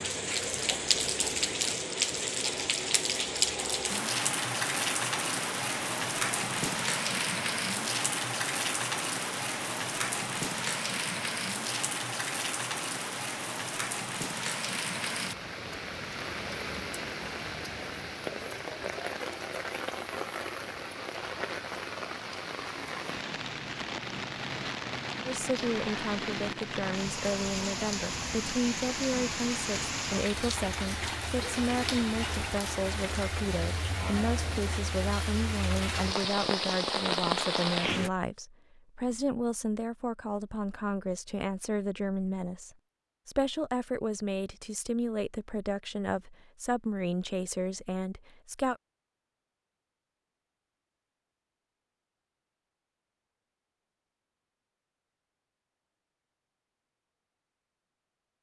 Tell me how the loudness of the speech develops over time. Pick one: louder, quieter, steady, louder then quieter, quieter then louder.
steady.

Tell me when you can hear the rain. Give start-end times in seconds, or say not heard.
0.0-38.1.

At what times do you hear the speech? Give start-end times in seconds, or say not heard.
25.2-48.8.